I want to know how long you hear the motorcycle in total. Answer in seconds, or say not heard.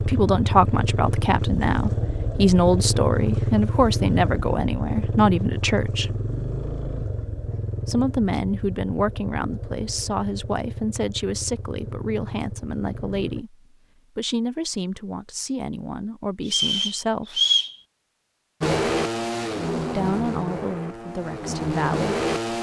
17 s.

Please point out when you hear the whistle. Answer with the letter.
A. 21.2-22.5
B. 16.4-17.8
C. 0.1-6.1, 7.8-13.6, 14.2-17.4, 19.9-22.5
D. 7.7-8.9
B.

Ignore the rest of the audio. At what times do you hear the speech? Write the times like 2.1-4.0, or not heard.
0.1-6.1, 7.8-13.6, 14.2-17.4, 19.9-22.5.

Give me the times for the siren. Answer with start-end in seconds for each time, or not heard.
not heard.